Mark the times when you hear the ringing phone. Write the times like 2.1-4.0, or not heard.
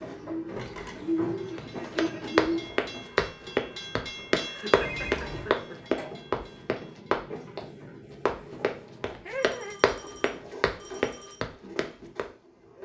0.5-1.1, 4.8-5.5, 9.3-11.4.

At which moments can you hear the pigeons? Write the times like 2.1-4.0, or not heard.
0.0-2.8.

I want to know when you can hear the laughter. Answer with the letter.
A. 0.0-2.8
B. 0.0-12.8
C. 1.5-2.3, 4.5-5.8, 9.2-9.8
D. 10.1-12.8
C.